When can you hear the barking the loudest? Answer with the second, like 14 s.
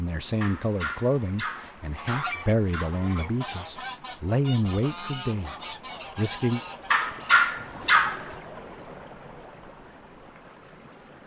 7 s.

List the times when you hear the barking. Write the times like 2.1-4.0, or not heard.
0.4-3.0, 6.9-8.3.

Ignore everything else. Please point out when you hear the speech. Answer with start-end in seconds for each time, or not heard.
0.0-6.6.